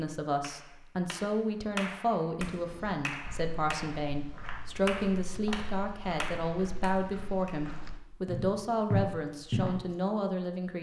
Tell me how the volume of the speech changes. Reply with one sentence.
The volume of the speech stays about the same.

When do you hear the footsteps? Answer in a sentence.
The footsteps can be heard from 3.2 to 9.9 s.